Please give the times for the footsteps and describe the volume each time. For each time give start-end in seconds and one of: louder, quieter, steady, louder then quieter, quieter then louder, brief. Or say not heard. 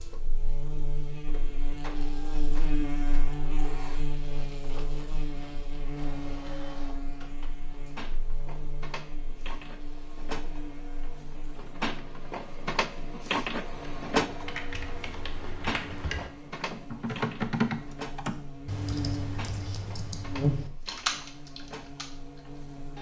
not heard.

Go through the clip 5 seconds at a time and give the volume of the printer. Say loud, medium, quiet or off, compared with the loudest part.
quiet, quiet, loud, medium, quiet.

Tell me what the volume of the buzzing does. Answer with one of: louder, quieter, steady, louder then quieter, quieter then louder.
quieter then louder.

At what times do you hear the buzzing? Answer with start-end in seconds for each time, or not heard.
0.0-22.9.